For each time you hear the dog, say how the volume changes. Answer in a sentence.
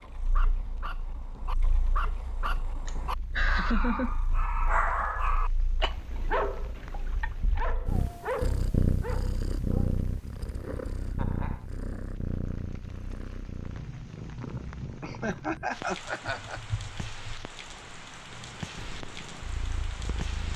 The dog can be heard from 0.0 to 10.0 s, getting louder then quieter.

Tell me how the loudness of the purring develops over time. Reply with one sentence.
The loudness of the purring goes up, then down.